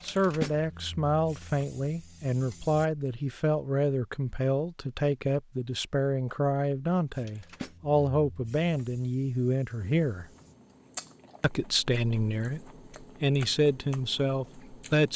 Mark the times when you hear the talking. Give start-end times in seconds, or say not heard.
0.0-10.2, 11.4-15.1.